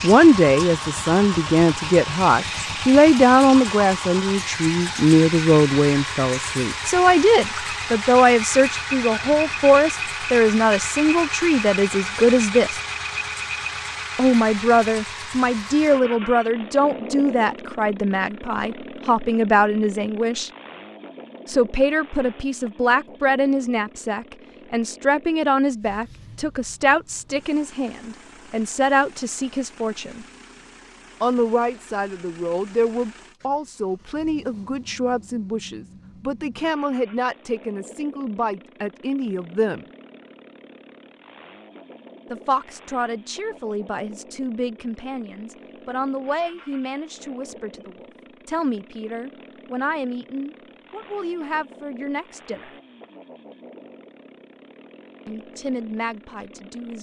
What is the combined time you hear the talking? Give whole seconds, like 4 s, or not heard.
49 s.